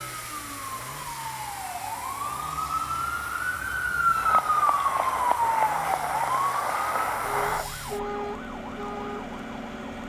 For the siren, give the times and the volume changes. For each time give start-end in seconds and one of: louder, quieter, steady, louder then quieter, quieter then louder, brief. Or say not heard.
0.0-10.0 louder then quieter.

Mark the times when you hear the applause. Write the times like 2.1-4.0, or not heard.
4.2-7.7.